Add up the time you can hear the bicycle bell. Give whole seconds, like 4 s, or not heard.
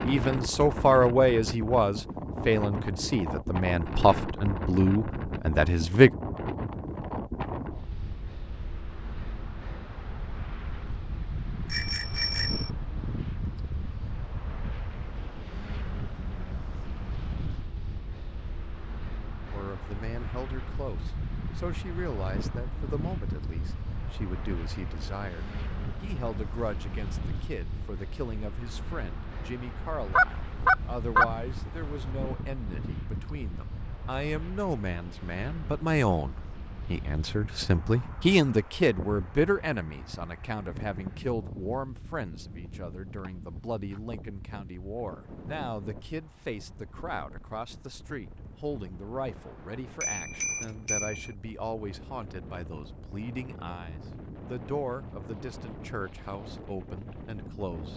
2 s.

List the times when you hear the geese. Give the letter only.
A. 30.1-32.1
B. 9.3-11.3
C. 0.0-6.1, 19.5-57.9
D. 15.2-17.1
A.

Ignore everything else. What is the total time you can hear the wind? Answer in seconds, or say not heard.
58 s.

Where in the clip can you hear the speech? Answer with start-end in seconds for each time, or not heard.
0.0-6.1, 19.5-57.9.